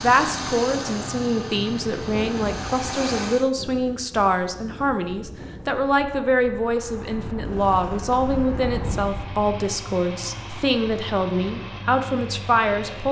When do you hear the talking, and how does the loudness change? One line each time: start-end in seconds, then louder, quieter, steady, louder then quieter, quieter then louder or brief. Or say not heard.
0.0-13.0 steady.